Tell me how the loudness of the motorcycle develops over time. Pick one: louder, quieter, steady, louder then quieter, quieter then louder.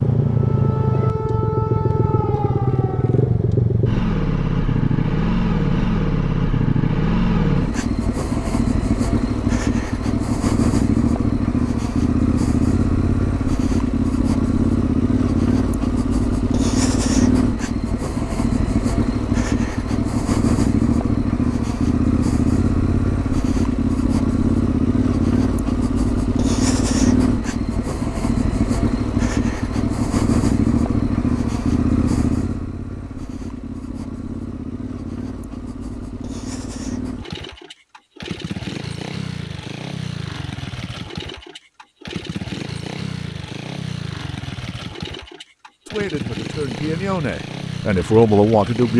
quieter.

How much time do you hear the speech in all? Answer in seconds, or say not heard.
3 s.